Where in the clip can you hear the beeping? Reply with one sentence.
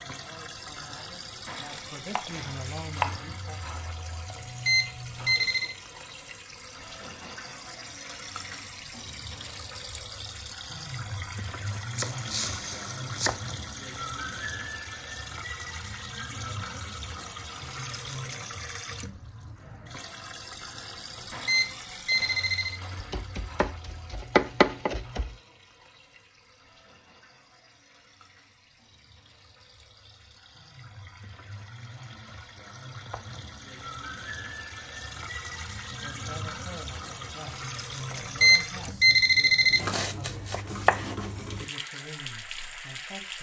The beeping can be heard from 4.3 to 5.8 s, from 21.1 to 22.8 s and from 38.1 to 39.8 s.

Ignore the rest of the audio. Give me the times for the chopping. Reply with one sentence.
You can hear the chopping from 1.7 to 3.2 s, from 11.9 to 13.4 s, from 23.0 to 25.4 s and from 39.8 to 41.2 s.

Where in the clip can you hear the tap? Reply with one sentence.
You can hear the tap from 0.0 to 43.3 s.